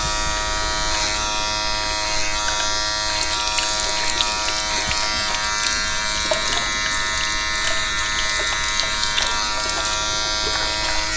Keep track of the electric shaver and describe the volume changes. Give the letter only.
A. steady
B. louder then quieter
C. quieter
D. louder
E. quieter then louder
A.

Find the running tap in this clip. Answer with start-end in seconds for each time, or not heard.
0.0-11.1.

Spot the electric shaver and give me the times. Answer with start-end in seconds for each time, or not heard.
0.0-11.1.